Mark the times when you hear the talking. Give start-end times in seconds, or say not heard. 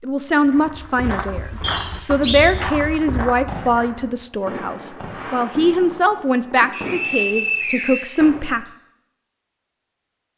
0.0-8.7.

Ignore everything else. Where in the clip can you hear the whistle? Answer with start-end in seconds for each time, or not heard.
1.6-2.5, 6.7-8.7.